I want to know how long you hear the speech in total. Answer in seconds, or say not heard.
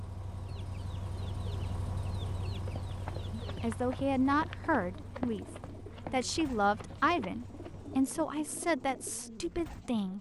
6 s.